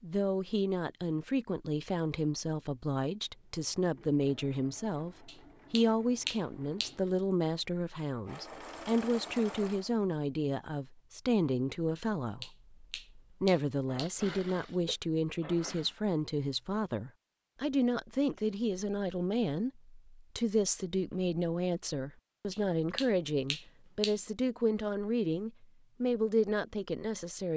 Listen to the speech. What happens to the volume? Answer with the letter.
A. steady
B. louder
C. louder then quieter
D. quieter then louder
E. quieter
A.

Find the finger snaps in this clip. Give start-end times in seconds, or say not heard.
5.2-7.0, 11.9-14.2, 22.5-24.2.